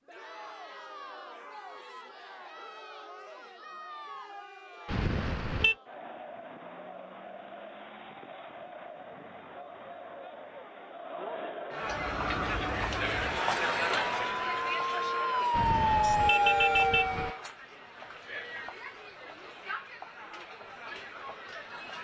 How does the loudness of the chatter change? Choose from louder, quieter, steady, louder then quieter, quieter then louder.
louder then quieter.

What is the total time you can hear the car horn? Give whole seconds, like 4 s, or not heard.
3 s.